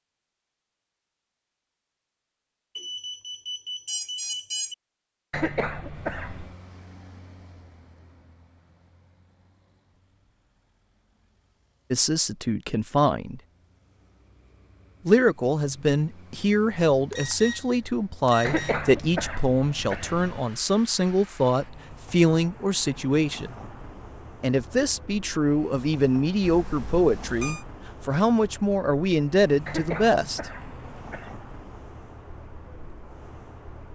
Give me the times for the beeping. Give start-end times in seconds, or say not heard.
2.8-4.8, 16.9-18.8, 26.4-27.6.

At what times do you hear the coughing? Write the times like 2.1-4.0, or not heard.
5.3-6.5, 18.4-20.4, 29.6-31.4.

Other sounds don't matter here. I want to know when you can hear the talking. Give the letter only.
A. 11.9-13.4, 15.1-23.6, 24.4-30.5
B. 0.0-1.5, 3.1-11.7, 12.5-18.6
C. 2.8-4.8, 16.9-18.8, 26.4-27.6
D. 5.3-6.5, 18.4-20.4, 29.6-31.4
A.